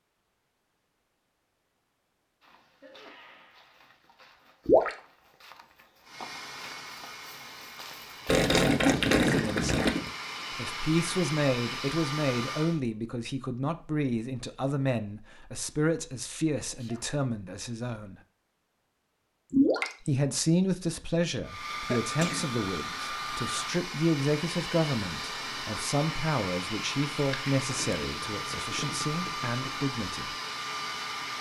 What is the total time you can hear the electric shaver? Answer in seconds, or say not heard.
not heard.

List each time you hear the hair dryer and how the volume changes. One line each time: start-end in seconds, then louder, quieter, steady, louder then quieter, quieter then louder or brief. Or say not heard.
6.0-12.8 louder
21.4-31.3 steady.